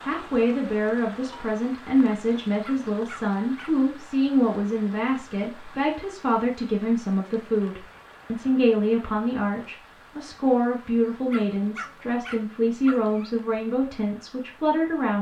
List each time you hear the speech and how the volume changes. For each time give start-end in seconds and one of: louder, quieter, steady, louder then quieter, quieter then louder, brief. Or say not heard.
0.0-15.1 steady.